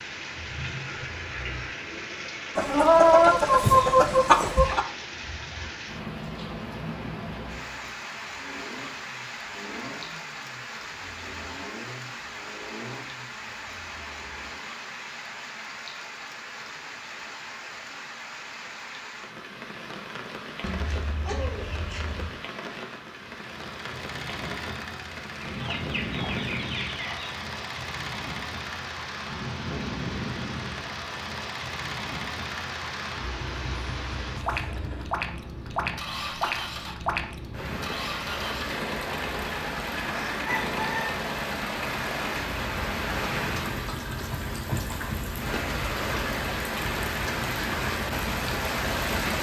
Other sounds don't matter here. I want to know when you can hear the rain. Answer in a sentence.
The rain can be heard from 0.0 to 49.3 s.